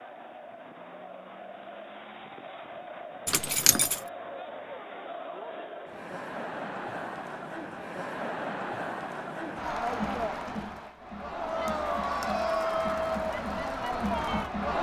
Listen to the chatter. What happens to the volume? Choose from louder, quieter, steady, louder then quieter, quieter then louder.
louder.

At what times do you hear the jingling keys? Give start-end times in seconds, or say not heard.
3.2-4.0.